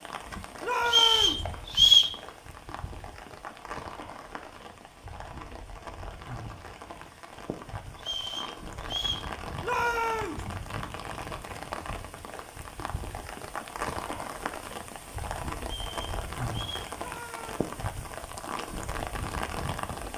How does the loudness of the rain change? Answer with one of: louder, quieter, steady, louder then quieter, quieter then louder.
louder.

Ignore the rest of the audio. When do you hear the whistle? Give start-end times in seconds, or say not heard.
0.8-2.1, 8.0-9.3, 15.7-16.9.